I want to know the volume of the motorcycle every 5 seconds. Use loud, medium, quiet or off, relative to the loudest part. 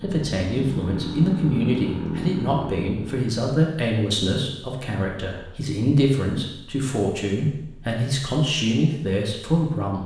loud, off.